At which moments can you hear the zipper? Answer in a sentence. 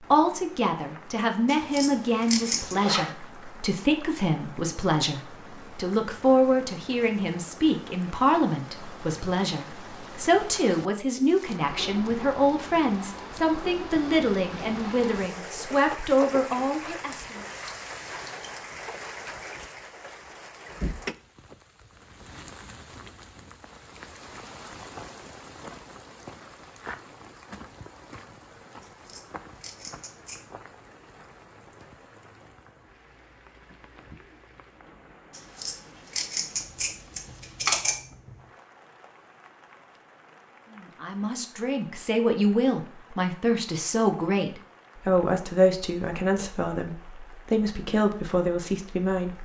You can hear the zipper from 2.4 to 3.1 s.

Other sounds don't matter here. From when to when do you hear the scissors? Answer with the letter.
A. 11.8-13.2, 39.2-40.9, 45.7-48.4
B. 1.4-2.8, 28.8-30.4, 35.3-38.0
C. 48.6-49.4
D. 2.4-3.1
B.